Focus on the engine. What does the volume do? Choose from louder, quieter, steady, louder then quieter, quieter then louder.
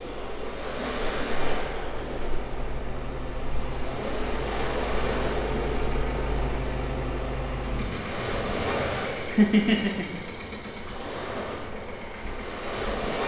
louder then quieter.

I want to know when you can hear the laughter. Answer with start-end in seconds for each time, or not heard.
9.3-10.2.